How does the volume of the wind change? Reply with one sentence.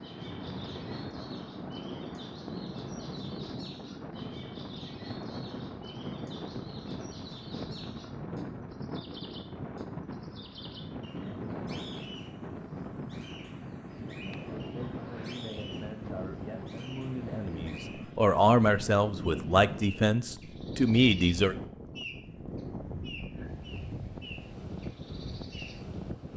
The loudness of the wind stays about the same.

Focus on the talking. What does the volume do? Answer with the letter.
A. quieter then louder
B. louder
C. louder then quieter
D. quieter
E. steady
B.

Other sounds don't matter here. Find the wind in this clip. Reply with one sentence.
You can hear the wind from 0.0 to 26.3 s.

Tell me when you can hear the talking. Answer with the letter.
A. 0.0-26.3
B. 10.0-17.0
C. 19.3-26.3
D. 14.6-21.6
D.